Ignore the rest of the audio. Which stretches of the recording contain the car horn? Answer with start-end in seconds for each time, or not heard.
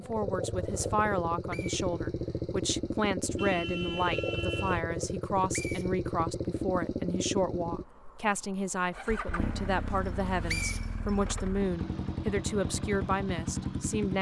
3.2-4.8.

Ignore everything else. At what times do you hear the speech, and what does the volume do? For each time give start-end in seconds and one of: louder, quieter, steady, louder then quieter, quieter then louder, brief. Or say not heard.
0.0-14.1 steady.